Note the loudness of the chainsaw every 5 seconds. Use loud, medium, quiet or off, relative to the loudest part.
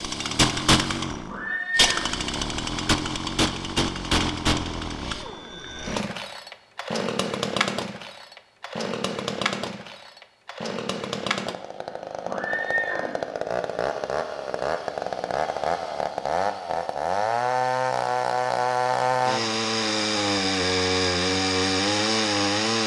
loud, medium, medium, loud, loud.